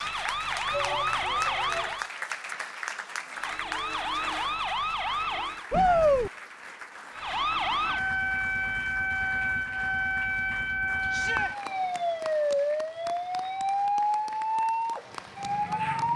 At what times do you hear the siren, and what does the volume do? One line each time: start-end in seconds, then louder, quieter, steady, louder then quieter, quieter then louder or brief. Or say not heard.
0.0-2.1 brief
3.4-5.7 brief
7.2-16.1 steady.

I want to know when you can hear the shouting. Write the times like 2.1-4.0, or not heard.
0.7-2.0, 5.7-6.3, 11.1-11.6.